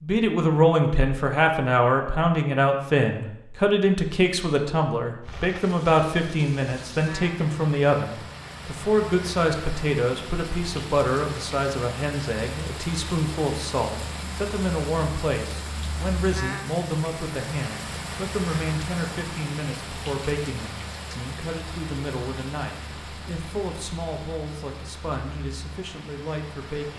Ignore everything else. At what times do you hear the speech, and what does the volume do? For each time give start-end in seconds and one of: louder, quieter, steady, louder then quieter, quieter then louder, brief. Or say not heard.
0.0-26.9 quieter.